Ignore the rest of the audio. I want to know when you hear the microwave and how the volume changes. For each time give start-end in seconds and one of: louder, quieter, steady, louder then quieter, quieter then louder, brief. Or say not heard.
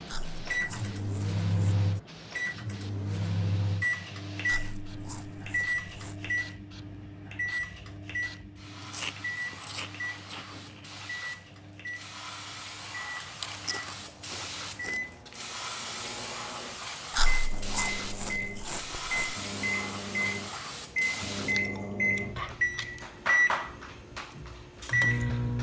0.0-25.5 quieter then louder.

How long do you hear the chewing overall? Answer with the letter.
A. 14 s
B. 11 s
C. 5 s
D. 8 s
B.